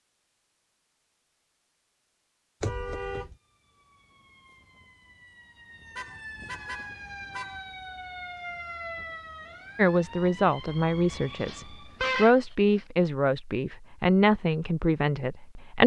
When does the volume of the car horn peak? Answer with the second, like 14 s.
12 s.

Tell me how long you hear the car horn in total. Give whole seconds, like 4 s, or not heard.
4 s.